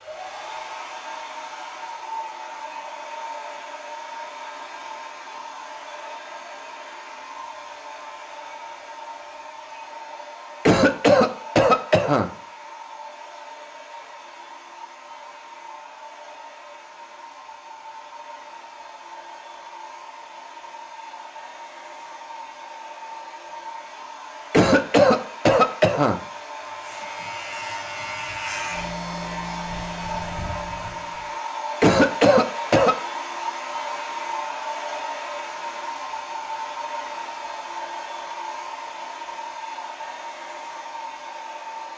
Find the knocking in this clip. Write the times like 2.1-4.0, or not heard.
not heard.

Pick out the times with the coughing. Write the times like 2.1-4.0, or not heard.
10.7-12.3, 24.5-26.1, 31.8-33.0.